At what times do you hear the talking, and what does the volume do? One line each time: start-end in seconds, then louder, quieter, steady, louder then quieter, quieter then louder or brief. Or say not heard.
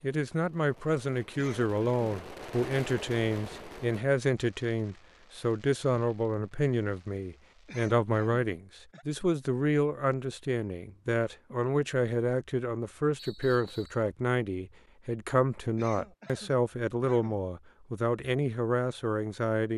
0.0-19.7 steady.